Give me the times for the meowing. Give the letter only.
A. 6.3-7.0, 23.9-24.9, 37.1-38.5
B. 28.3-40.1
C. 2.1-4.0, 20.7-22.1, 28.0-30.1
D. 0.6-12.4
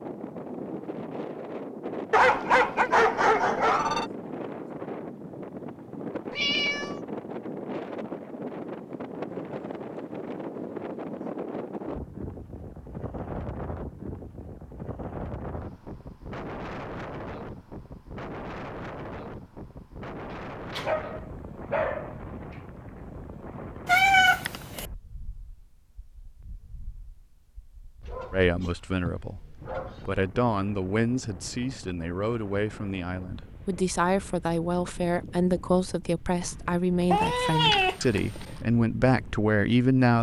A.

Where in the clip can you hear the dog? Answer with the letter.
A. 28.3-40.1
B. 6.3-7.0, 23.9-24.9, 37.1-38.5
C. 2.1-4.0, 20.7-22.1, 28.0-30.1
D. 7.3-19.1
C.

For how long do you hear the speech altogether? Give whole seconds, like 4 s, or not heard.
12 s.